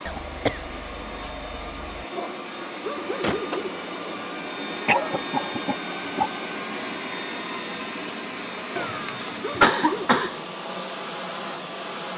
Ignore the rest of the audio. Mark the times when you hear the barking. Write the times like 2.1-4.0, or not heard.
2.1-3.7, 8.7-10.3.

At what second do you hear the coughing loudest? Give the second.
10 s.